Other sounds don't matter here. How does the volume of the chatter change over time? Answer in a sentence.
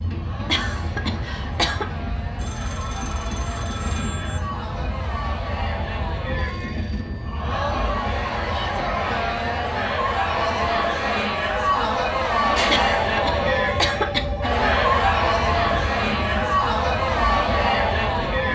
The loudness of the chatter goes up.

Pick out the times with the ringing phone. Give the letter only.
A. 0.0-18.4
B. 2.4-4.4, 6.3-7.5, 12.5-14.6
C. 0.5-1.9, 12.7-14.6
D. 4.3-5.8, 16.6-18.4
B.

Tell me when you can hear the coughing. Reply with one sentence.
You can hear the coughing from 0.5 to 1.9 s and from 12.7 to 14.6 s.